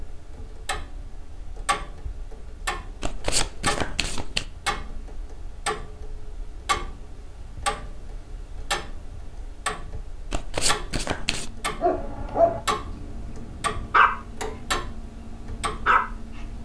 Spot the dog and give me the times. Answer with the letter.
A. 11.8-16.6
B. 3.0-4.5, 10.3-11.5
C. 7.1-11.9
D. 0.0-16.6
A.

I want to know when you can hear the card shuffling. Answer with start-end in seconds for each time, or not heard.
3.0-4.5, 10.3-11.5.